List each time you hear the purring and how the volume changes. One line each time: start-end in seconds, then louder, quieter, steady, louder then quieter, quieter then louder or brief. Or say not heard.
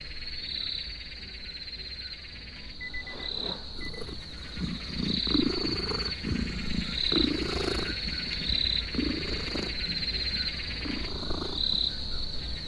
3.8-12.6 quieter.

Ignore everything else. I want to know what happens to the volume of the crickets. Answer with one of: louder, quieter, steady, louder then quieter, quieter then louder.
louder.